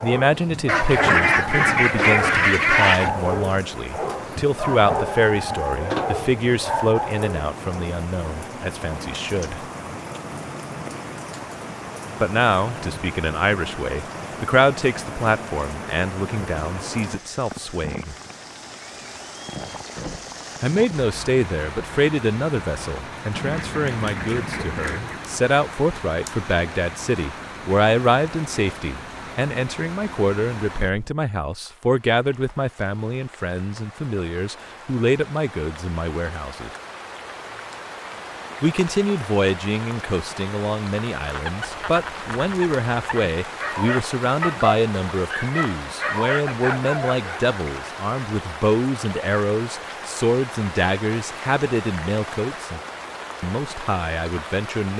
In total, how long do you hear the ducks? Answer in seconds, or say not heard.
6 s.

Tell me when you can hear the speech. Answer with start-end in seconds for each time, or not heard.
0.0-9.6, 12.2-18.1, 20.6-36.7, 38.6-52.8, 53.4-54.9.